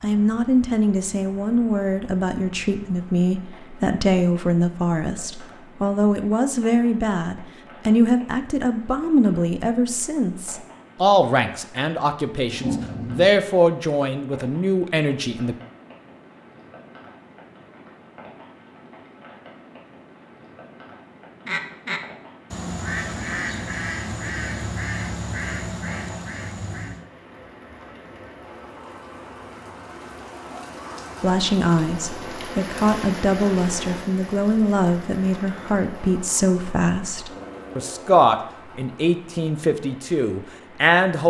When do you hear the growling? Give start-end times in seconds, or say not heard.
12.4-13.3, 37.2-38.1.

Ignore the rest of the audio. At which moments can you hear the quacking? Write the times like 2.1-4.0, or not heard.
21.4-27.1.